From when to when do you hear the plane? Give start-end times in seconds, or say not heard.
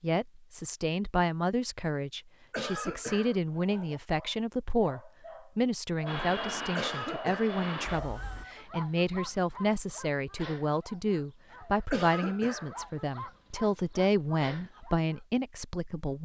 6.0-8.4.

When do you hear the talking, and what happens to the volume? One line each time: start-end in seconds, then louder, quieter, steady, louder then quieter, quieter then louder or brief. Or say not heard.
0.0-16.1 steady.